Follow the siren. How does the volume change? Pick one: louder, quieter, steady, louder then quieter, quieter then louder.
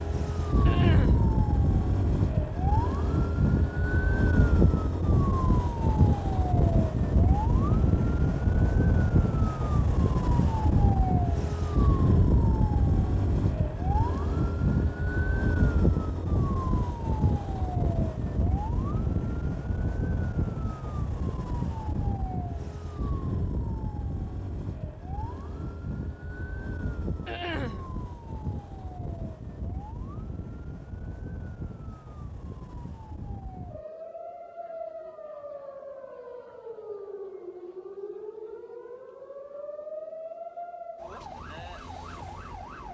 quieter.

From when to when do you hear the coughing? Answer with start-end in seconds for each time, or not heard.
0.7-1.2, 27.2-27.9.